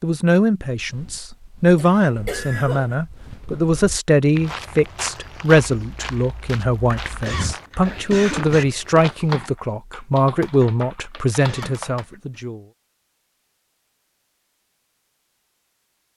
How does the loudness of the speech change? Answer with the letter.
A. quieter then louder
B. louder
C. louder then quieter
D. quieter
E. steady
E.